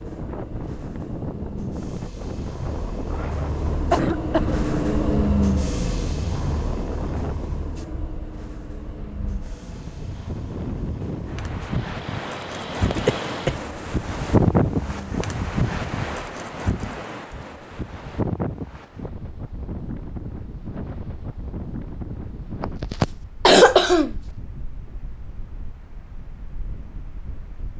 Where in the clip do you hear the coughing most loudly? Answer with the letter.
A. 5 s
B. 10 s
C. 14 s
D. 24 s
D.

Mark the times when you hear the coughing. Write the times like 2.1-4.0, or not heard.
3.9-4.6, 12.8-13.6, 22.6-24.1.